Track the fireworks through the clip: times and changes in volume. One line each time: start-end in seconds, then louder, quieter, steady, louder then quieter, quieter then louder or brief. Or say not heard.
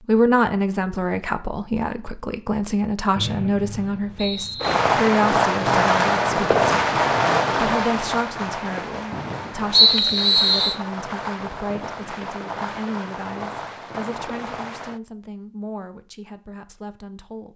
4.6-15.0 quieter.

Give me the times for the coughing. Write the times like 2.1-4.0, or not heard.
not heard.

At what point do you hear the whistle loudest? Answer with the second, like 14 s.
10 s.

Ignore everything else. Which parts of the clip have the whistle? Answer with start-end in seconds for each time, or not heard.
3.1-4.8, 9.7-10.8.